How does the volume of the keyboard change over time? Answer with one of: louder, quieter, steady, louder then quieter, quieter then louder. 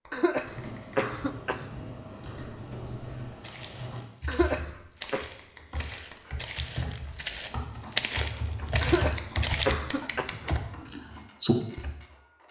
louder.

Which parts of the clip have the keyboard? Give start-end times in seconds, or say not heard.
0.4-11.9.